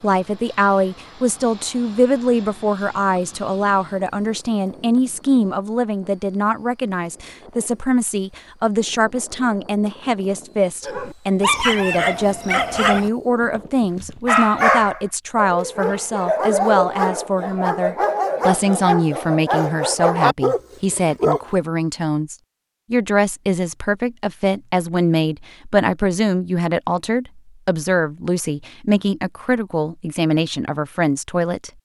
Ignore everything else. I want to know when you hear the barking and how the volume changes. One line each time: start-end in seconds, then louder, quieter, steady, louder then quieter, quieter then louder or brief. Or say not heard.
10.8-21.4 steady.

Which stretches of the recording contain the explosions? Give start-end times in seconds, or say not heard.
not heard.